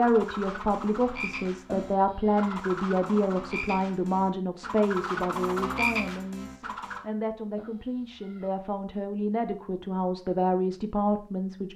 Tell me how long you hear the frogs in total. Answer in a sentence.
You can hear the frogs for 7 seconds altogether.